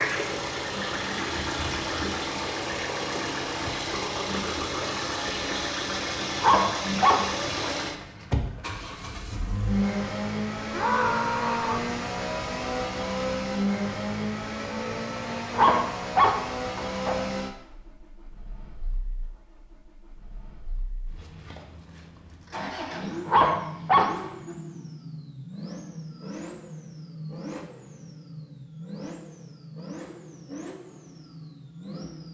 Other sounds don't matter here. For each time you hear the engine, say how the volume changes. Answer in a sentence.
The engine can be heard from 0.0 to 32.2 s, getting quieter.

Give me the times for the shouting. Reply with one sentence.
The shouting can be heard from 10.7 to 11.9 s.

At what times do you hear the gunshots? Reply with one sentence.
You can't hear the gunshots here.